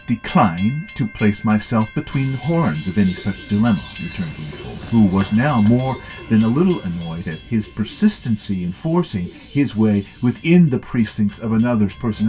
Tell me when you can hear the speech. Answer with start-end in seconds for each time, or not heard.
0.1-12.2.